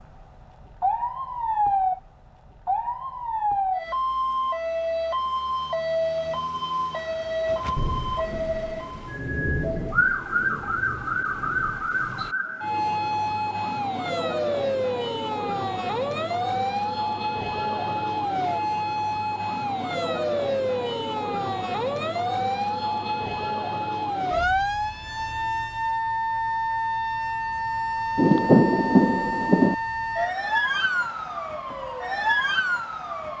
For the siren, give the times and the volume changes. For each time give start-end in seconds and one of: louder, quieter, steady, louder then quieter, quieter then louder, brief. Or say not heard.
0.0-33.3 steady.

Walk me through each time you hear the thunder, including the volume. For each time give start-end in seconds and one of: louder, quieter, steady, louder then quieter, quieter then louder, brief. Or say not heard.
7.8-12.3 louder then quieter
28.1-29.8 brief.